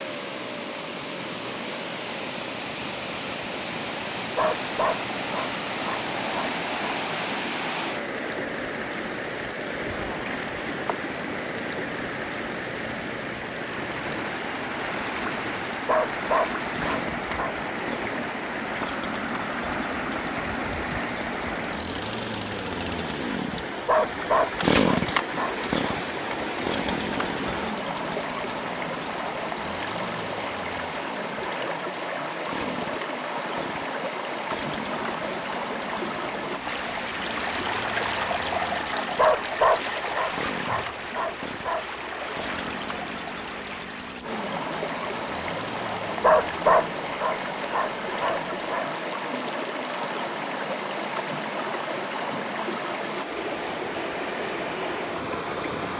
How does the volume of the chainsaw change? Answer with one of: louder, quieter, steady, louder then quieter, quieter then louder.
louder then quieter.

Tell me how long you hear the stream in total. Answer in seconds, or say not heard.
56 s.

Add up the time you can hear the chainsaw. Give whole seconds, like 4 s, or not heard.
56 s.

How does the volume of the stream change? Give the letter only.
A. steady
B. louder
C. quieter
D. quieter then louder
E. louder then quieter
A.